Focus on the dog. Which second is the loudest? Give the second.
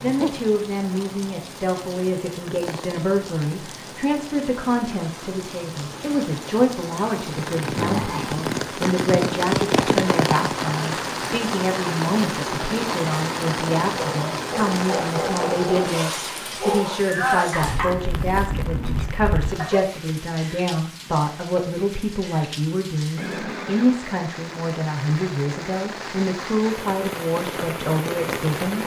17 s.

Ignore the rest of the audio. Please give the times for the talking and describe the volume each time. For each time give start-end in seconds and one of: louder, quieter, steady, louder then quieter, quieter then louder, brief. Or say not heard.
0.0-28.8 steady.